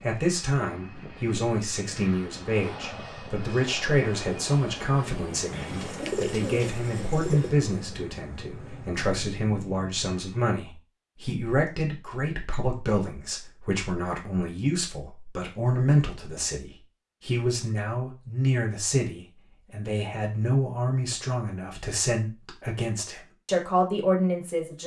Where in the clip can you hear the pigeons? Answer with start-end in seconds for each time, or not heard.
5.5-7.5.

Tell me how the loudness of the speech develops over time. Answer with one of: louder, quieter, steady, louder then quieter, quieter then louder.
steady.